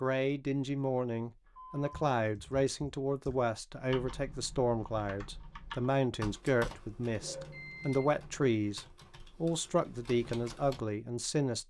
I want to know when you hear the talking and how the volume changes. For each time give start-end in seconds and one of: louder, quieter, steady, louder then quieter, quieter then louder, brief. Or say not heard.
0.0-11.6 steady.